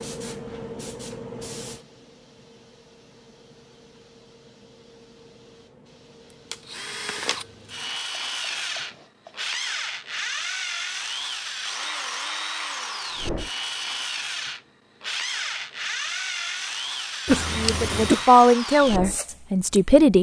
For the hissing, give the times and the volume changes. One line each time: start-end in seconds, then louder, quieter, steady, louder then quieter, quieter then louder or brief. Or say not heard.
0.0-9.5 quieter.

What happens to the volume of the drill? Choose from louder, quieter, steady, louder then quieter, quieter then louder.
steady.